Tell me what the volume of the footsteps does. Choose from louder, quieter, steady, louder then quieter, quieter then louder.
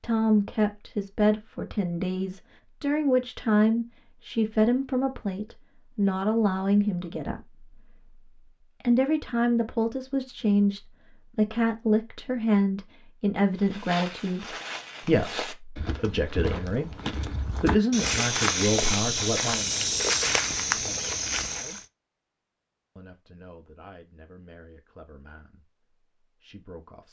louder.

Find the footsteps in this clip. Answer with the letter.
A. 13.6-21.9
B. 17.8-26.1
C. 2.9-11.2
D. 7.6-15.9
A.